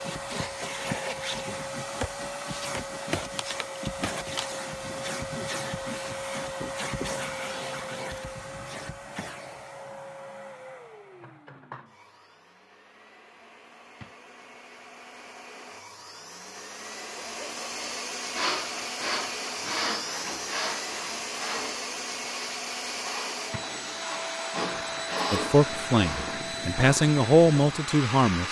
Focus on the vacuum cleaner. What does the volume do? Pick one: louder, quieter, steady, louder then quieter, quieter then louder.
quieter then louder.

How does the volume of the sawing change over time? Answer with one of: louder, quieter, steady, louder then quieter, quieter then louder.
quieter then louder.